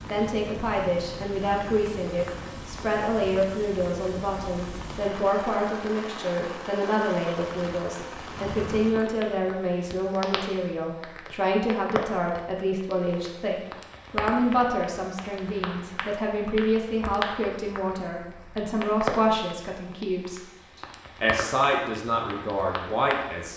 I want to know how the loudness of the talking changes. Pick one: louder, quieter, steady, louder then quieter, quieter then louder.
steady.